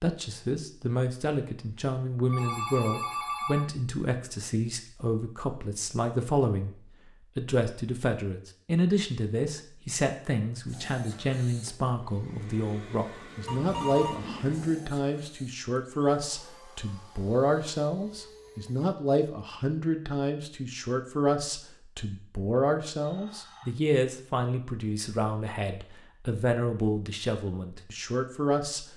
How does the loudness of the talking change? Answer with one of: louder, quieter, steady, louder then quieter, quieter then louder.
steady.